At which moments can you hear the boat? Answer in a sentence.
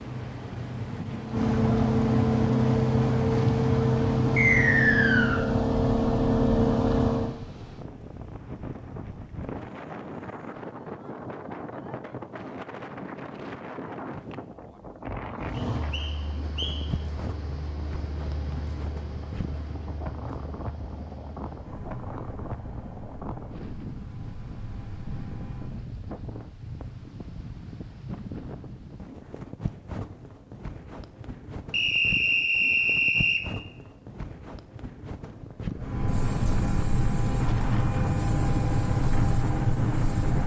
You can hear the boat from 0.0 to 7.3 s, from 15.4 to 25.8 s and from 35.8 to 40.4 s.